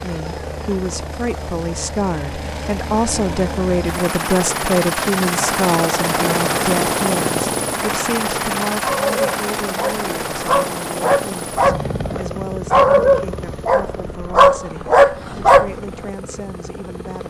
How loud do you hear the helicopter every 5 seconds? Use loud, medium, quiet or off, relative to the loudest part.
medium, loud, medium, quiet.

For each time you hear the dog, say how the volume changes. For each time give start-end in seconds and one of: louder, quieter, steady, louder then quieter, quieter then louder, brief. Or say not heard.
8.8-15.8 louder.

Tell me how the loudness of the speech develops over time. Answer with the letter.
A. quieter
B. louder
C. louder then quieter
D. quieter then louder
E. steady
A.